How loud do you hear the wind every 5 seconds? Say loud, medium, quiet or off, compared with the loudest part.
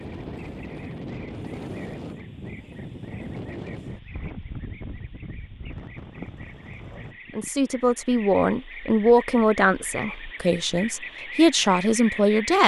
loud, medium, off.